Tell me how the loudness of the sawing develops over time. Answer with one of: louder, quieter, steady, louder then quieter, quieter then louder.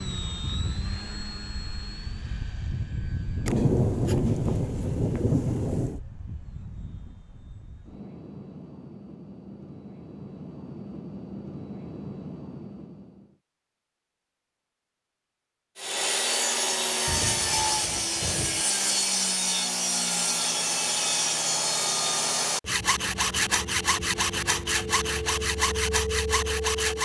steady.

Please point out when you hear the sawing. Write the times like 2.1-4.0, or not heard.
15.8-27.0.